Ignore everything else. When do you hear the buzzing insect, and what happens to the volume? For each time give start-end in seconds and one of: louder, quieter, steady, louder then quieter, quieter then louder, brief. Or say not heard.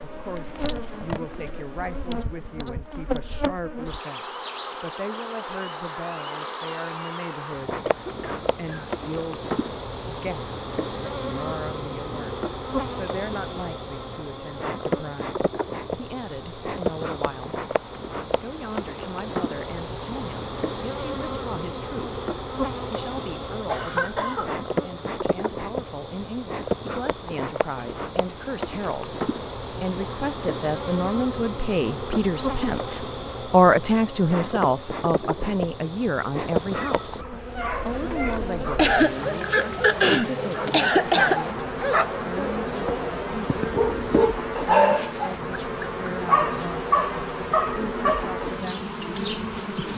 0.0-49.9 steady.